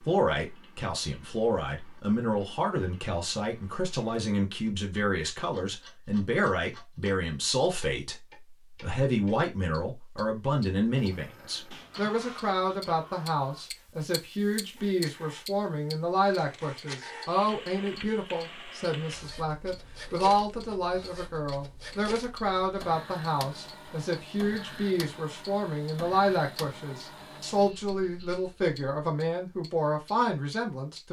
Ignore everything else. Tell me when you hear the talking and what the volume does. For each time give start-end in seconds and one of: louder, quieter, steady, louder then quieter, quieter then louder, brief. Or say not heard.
0.0-31.0 steady.